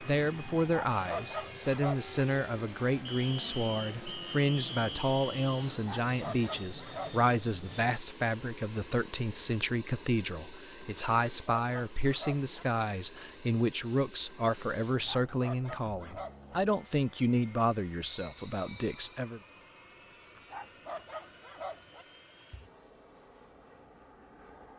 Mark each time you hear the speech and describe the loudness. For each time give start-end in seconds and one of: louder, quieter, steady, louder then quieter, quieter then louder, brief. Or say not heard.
0.0-19.4 steady.